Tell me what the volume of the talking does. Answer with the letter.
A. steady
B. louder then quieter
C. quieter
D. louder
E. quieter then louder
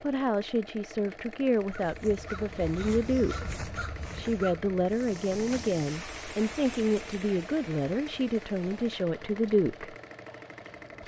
A.